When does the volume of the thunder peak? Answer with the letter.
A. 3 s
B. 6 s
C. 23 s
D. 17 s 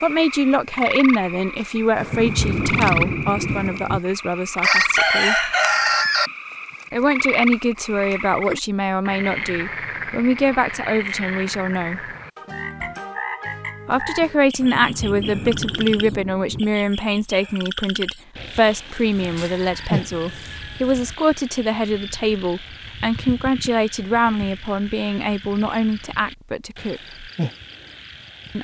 A.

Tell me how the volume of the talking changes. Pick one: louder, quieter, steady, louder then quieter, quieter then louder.
steady.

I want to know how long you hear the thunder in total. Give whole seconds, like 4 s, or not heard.
4 s.